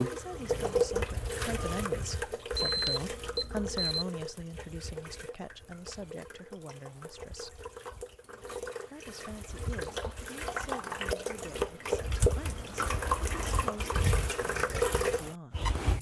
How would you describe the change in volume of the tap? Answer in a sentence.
The volume of the tap goes down, then up.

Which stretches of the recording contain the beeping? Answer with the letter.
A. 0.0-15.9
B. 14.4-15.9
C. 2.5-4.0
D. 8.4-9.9
C.